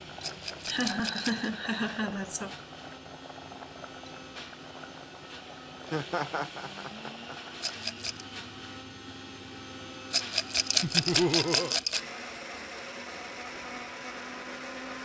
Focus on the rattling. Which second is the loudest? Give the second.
11 s.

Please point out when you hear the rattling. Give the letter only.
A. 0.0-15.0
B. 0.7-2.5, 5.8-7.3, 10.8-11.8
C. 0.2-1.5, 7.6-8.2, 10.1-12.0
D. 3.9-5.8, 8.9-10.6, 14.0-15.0
C.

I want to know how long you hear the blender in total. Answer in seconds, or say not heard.
15 s.